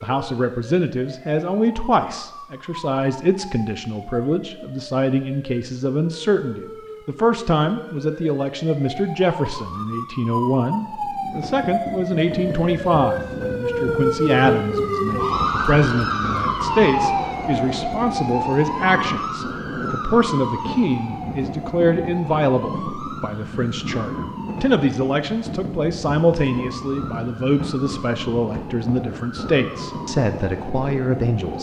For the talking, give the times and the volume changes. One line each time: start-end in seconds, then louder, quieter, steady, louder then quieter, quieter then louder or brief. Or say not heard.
0.0-31.5 steady.